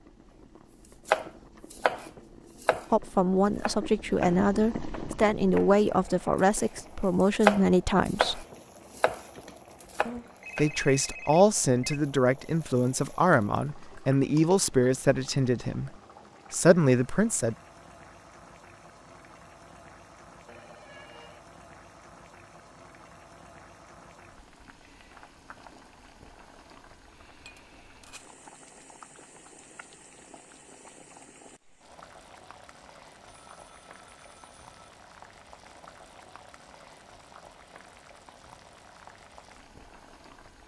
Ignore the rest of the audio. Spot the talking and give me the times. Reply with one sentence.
The talking can be heard from 2.9 to 8.4 s, from 10.6 to 15.9 s and from 16.5 to 17.6 s.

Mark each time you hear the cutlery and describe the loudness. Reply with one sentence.
You can't hear the cutlery here.